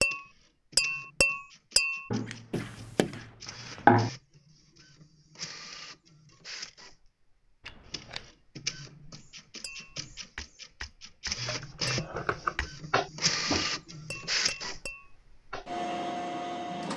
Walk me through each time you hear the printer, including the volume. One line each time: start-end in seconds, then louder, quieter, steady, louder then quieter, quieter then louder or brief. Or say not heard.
0.0-16.9 louder.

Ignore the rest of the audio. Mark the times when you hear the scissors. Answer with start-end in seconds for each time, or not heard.
2.1-4.1, 7.7-8.2, 11.4-12.7.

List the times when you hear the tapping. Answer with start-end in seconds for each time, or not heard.
0.0-3.1, 9.6-15.7.